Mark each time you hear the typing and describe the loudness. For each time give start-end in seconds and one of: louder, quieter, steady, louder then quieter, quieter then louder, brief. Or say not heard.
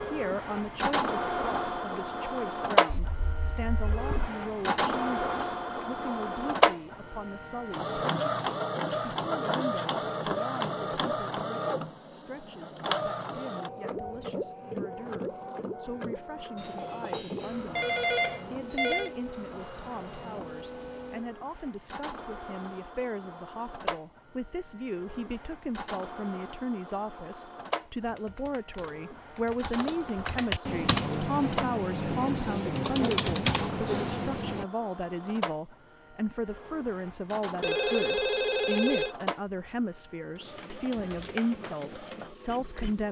27.9-34.6 louder.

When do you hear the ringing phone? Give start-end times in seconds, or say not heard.
2.9-4.3, 16.6-19.1, 37.6-39.1.